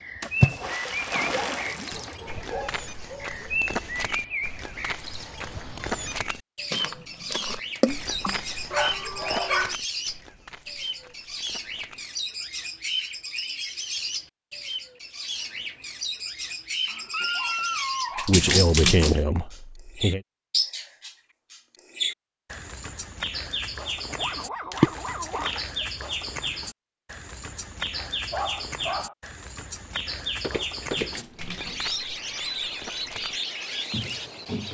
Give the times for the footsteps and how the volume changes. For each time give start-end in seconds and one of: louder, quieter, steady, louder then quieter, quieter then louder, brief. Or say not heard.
1.9-12.1 quieter
30.4-34.6 quieter then louder.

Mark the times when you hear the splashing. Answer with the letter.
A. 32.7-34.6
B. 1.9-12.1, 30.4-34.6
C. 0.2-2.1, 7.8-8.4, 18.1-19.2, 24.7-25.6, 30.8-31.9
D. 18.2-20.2
C.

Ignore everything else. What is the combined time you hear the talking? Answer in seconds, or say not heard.
2 s.